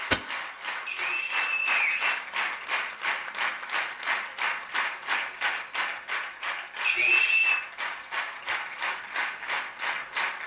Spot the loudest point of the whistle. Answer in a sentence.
The loudest moment of the whistle is at 7 seconds.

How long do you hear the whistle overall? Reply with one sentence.
The whistle can be heard for 2 seconds in total.